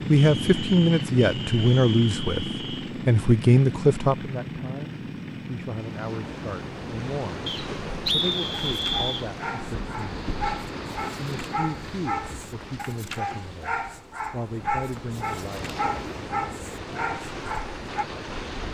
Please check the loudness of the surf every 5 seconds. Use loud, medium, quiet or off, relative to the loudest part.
off, loud, loud, loud.